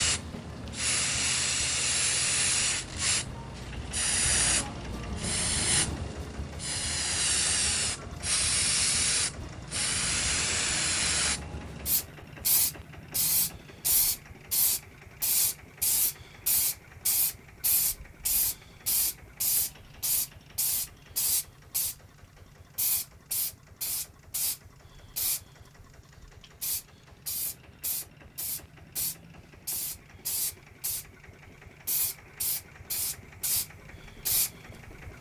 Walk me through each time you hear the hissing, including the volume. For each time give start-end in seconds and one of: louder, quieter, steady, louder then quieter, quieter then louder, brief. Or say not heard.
0.0-35.0 quieter.